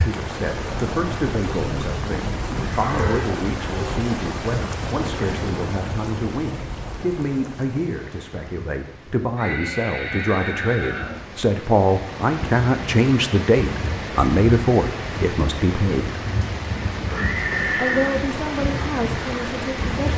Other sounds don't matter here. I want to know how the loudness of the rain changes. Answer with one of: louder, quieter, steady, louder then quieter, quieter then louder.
quieter then louder.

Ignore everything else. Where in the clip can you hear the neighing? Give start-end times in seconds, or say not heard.
2.6-3.2, 9.3-11.2, 17.1-18.2.